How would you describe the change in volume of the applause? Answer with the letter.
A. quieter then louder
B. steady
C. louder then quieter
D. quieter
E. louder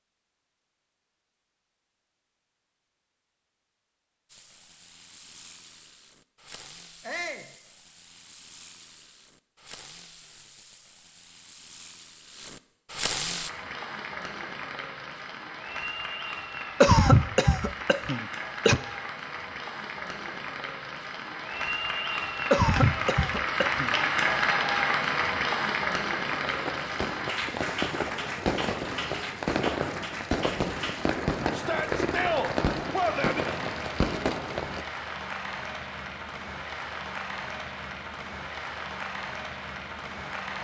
C.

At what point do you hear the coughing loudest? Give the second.
17 s.